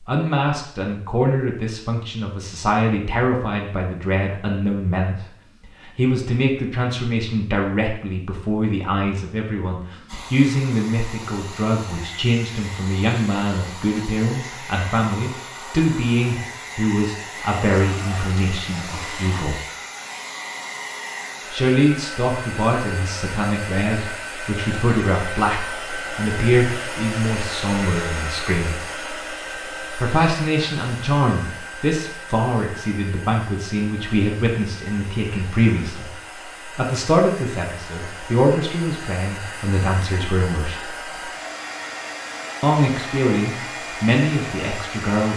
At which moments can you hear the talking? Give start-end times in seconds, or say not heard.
0.1-5.2, 5.8-19.6, 21.5-28.8, 29.9-36.1, 36.8-40.8, 42.6-45.3.